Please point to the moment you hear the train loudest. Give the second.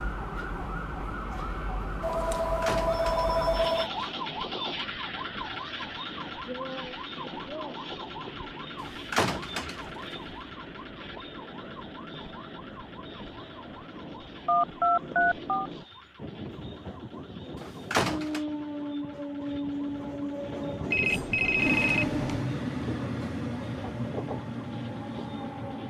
22 s.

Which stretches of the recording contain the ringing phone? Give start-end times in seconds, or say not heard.
2.0-3.9, 14.4-15.6, 20.9-22.4.